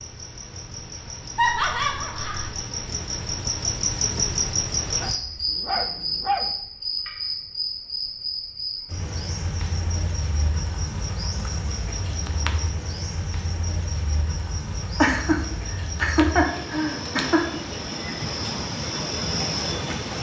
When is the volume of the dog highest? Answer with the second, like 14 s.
6 s.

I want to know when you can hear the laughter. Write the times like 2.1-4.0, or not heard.
1.4-2.5, 14.9-17.6.